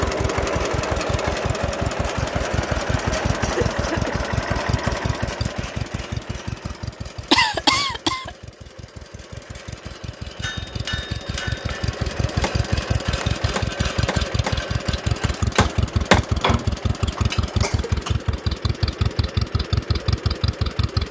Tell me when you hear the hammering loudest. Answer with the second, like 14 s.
16 s.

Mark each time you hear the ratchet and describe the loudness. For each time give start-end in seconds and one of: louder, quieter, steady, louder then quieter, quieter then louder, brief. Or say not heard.
not heard.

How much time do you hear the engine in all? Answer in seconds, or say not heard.
21 s.